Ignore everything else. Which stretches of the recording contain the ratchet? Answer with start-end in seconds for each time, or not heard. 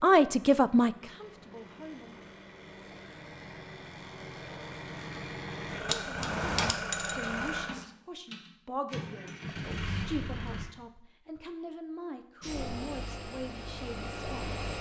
5.8-7.5.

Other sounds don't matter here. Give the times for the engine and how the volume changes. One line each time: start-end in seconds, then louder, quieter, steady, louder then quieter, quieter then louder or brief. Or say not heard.
0.0-10.7 louder
12.4-14.7 brief.